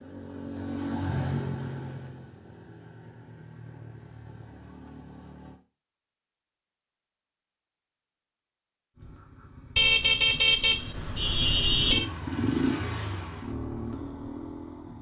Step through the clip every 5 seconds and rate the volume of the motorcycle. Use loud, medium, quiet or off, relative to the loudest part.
loud, quiet, loud.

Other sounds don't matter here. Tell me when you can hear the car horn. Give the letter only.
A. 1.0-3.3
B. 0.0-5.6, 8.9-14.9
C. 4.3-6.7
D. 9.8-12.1
D.